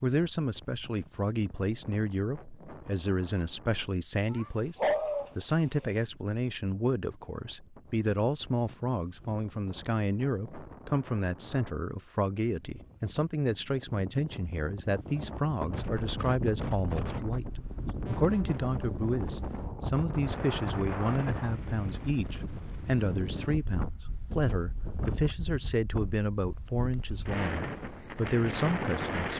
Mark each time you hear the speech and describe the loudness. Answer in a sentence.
The speech can be heard from 0.0 to 29.3 s, at a steady volume.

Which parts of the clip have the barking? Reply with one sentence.
The barking can be heard from 4.3 to 5.8 s.